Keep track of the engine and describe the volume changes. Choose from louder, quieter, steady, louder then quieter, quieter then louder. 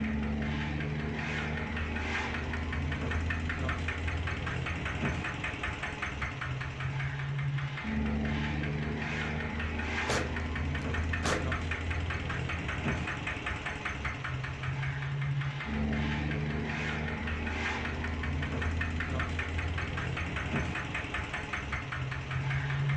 steady.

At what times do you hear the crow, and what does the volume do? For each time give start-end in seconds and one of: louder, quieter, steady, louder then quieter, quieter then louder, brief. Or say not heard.
not heard.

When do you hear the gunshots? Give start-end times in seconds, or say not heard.
10.1-11.6.